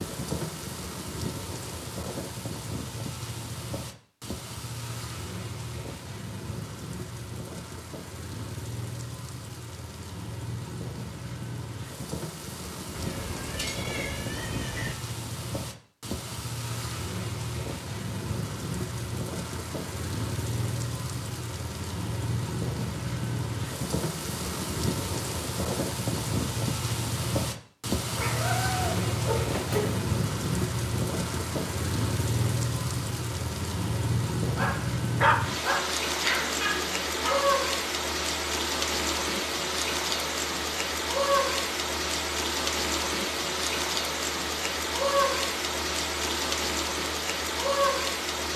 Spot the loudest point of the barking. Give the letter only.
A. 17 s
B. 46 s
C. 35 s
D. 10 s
C.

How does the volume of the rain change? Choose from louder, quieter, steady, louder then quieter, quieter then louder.
louder.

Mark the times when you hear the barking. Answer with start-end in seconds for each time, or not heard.
34.5-37.4.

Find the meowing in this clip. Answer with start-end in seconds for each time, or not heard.
12.9-14.9, 28.1-30.0.